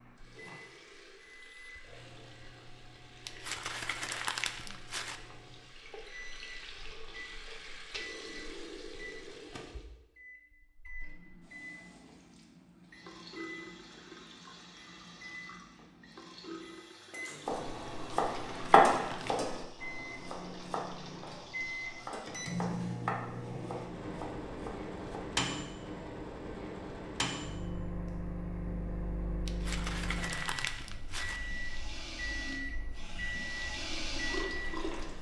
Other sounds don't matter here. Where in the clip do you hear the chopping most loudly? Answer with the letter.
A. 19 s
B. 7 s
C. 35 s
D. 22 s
A.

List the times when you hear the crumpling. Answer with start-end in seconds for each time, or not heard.
3.2-5.2, 18.3-19.4, 29.4-31.4.